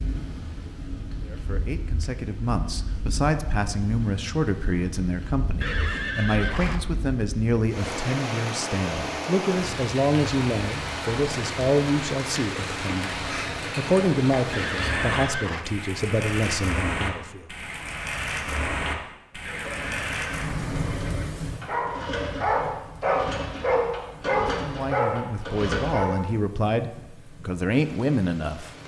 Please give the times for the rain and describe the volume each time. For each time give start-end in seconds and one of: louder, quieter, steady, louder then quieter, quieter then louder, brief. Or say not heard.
0.0-28.8 louder then quieter.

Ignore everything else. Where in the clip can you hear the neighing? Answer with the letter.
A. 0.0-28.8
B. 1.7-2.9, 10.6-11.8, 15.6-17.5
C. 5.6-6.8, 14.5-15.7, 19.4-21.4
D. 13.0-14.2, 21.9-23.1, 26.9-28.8
C.